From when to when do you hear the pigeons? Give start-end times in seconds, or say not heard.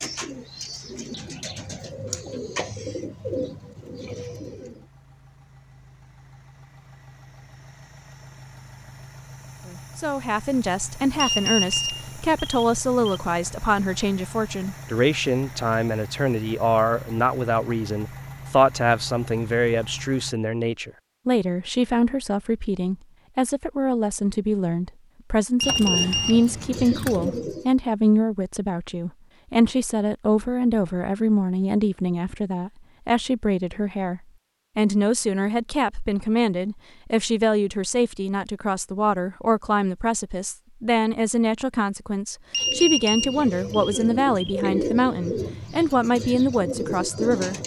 0.0-4.8, 25.8-27.6, 42.6-47.6.